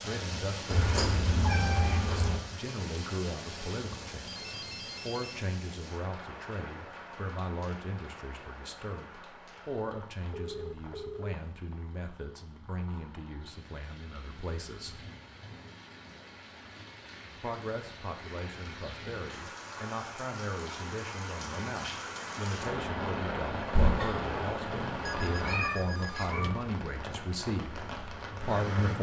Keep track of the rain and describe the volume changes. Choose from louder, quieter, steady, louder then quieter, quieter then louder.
quieter then louder.